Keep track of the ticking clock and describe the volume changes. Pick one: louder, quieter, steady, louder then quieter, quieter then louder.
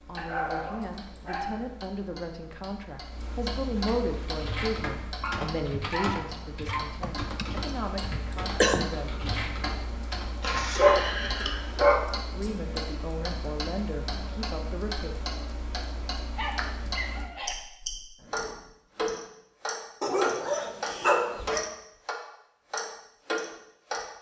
louder.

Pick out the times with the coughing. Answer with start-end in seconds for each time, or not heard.
7.0-8.9.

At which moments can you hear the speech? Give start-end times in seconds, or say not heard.
0.1-9.2, 12.3-15.2.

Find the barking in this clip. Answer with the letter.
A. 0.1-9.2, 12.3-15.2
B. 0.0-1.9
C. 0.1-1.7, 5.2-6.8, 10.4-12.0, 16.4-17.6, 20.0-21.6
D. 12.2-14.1
C.